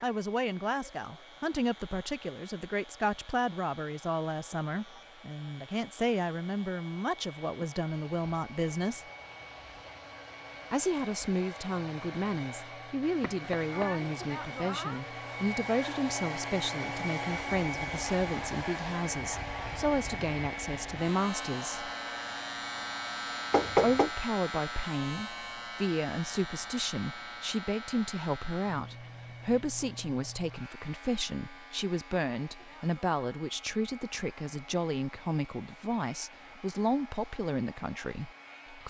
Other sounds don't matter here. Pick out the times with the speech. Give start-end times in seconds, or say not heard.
0.0-9.1, 10.7-21.9, 23.8-38.8.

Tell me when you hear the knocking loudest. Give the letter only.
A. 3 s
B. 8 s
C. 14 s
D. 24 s
D.